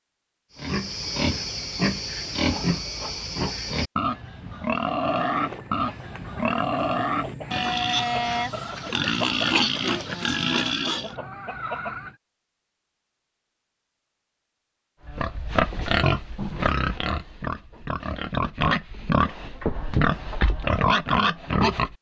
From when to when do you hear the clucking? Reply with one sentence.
The clucking can be heard from 4.7 to 12.2 s.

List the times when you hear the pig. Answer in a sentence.
You can hear the pig from 0.6 to 11.2 s and from 15.1 to 21.9 s.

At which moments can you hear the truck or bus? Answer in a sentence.
The truck or bus can't be heard in this clip.